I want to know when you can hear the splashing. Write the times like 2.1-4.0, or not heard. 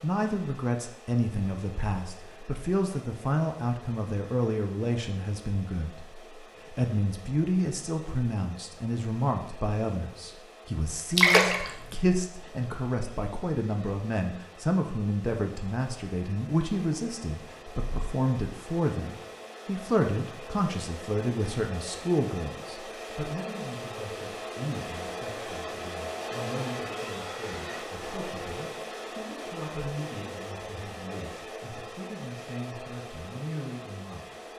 11.2-11.7.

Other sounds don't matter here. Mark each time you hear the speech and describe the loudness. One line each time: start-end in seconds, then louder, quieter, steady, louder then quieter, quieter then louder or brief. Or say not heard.
0.0-34.2 quieter.